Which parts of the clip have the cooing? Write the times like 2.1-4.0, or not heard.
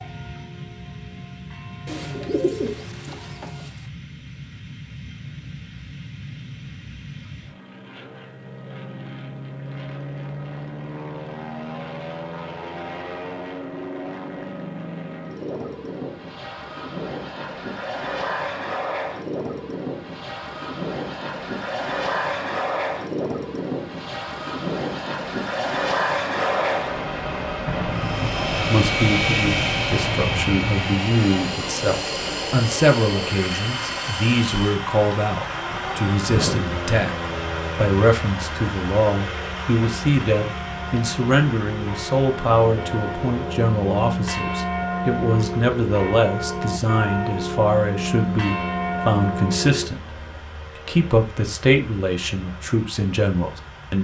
1.9-3.7.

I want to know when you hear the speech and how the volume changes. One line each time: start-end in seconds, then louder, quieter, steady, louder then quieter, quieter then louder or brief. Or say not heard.
28.6-54.0 steady.